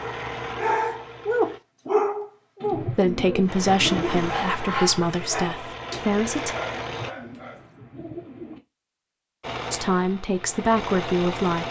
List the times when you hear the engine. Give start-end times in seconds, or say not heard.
0.0-1.6, 3.5-7.2, 9.4-11.6.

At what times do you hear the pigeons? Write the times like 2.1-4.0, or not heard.
2.6-4.3, 6.8-8.6.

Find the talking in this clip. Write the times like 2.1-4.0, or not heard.
2.8-6.5, 9.7-11.6.